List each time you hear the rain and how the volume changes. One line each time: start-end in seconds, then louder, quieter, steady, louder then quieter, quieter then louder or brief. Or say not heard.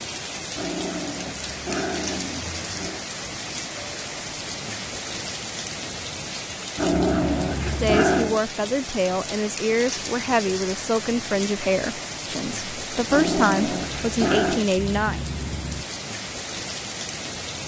0.0-17.6 steady.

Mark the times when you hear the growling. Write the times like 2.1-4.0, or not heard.
0.6-3.0, 6.8-8.4, 13.1-14.7.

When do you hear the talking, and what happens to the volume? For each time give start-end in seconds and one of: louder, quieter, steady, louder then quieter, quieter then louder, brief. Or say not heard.
7.7-15.2 steady.